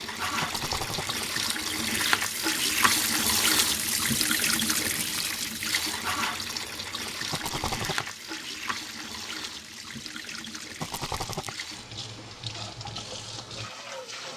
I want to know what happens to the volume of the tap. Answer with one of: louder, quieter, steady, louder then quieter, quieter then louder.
quieter.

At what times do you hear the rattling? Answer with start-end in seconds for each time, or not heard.
0.4-1.1, 7.3-8.1, 10.8-11.6.